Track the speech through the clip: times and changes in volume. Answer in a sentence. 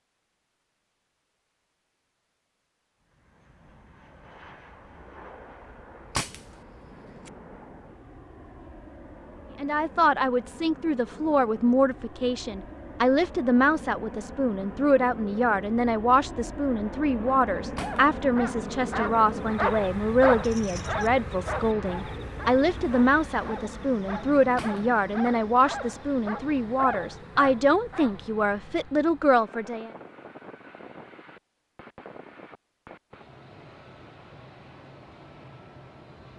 The speech can be heard from 9.6 to 29.9 s, at a steady volume.